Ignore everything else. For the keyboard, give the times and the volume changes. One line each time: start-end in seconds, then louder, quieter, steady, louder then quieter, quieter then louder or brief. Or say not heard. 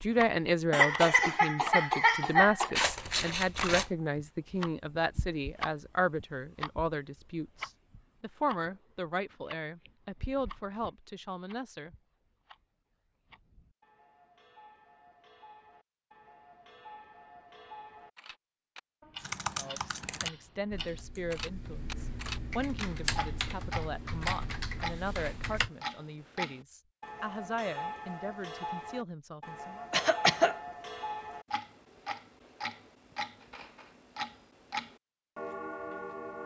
19.2-25.7 quieter then louder.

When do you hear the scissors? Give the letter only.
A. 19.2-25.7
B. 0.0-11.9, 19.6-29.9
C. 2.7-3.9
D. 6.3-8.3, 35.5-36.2
C.